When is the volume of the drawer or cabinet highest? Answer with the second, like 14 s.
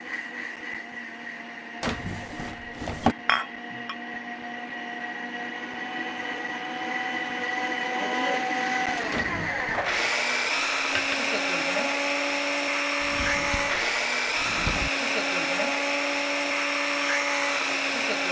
3 s.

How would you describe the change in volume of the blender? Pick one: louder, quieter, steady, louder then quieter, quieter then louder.
louder.